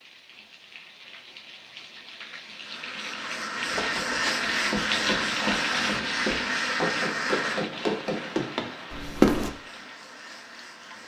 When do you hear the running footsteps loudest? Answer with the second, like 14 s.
9 s.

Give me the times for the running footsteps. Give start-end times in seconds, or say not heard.
3.6-9.5.